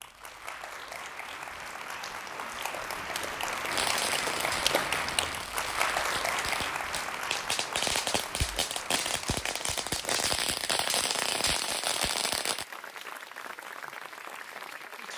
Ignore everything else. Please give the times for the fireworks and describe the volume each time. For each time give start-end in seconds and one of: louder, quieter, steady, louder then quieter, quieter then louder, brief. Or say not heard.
3.6-12.7 louder.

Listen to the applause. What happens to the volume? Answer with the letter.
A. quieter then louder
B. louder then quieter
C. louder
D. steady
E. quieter
B.